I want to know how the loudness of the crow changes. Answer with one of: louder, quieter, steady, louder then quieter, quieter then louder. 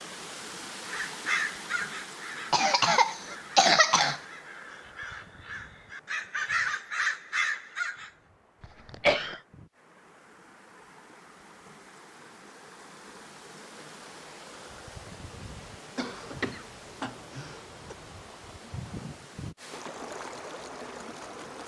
quieter then louder.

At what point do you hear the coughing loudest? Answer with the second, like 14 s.
4 s.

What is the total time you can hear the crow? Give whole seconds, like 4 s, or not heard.
7 s.